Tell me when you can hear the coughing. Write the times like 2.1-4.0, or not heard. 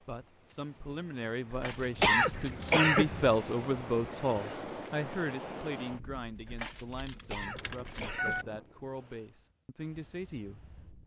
2.0-3.1, 7.2-8.4.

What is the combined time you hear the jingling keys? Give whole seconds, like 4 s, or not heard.
3 s.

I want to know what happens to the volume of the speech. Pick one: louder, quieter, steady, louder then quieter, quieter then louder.
louder then quieter.